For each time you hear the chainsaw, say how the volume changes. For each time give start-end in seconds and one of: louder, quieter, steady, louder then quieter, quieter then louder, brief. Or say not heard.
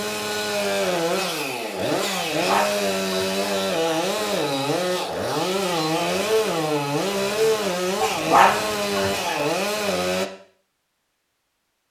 0.0-10.2 steady.